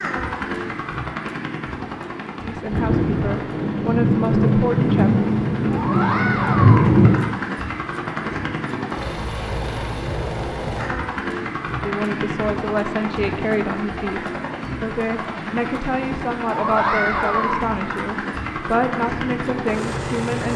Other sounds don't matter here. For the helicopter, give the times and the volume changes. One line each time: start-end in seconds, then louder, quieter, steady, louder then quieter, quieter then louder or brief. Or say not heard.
0.0-20.5 louder.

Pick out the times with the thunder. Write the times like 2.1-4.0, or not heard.
2.7-7.3.